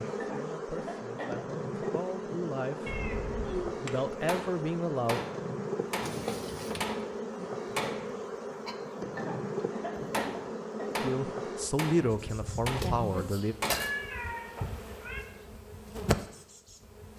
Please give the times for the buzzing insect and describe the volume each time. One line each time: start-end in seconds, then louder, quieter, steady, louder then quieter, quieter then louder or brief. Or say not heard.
0.0-17.1 steady.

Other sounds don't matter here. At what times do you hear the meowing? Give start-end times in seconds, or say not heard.
2.9-3.8, 6.0-6.8, 13.7-15.2.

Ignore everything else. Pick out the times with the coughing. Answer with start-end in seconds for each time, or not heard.
0.1-2.0, 9.2-11.0.